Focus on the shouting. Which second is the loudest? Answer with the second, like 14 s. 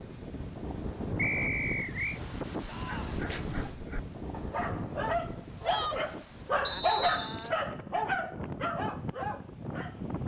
6 s.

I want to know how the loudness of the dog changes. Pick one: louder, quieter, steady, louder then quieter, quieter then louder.
louder then quieter.